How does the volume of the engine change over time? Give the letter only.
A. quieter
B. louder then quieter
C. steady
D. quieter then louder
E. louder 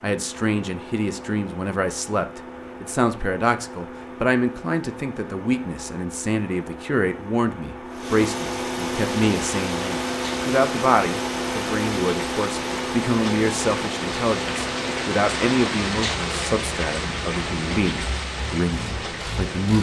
B.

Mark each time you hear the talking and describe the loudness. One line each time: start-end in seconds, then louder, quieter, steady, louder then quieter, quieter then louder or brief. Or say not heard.
0.0-19.7 steady.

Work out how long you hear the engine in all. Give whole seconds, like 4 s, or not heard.
20 s.